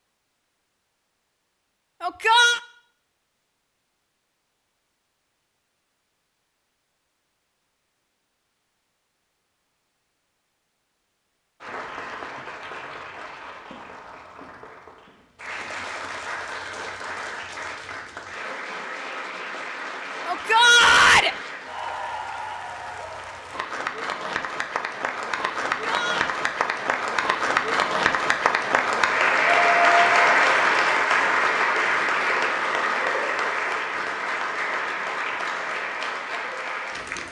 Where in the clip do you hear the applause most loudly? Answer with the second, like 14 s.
30 s.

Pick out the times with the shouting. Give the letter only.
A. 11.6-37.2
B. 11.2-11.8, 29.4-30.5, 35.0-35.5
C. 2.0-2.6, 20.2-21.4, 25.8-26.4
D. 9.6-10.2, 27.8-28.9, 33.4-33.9
C.